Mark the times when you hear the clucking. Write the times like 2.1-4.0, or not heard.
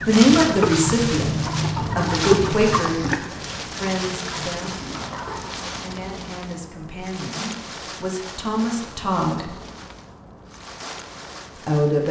0.0-5.6.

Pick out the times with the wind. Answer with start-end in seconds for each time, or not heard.
0.0-12.0.